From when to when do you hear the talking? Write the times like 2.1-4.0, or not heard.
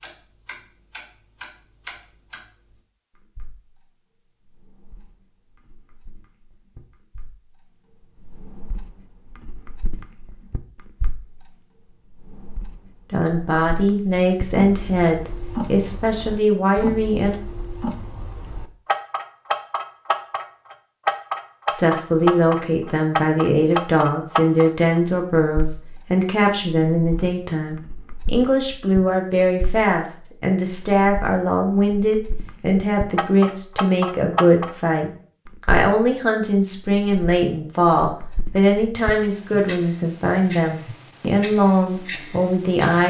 13.1-17.4, 21.7-43.0.